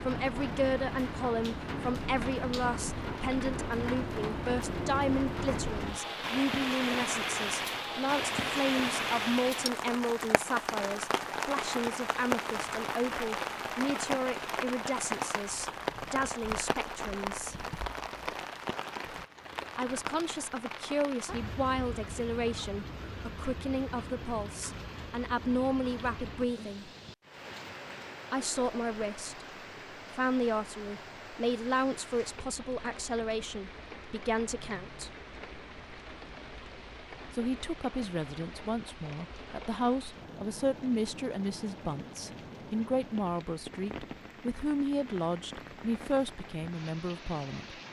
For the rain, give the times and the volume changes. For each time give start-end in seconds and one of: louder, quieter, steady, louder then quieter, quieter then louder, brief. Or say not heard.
0.0-47.8 quieter.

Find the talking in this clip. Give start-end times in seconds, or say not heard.
0.0-17.6, 19.8-26.9, 28.3-29.4, 30.1-35.1, 37.3-47.8.